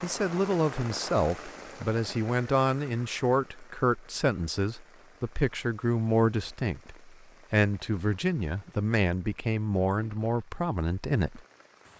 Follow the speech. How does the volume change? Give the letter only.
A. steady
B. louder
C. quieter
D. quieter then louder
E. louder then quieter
A.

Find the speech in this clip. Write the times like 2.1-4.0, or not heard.
0.0-11.4.